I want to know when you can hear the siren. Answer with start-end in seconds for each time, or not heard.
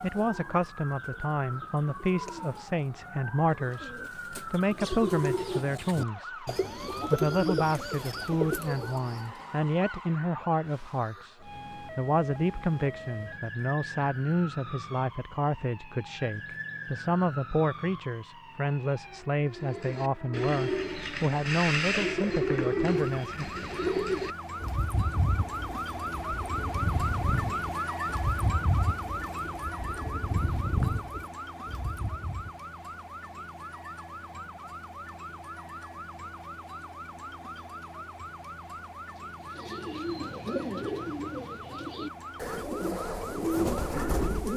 0.0-44.5.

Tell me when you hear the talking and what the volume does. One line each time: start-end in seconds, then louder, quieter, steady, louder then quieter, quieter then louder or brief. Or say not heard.
0.0-23.4 steady.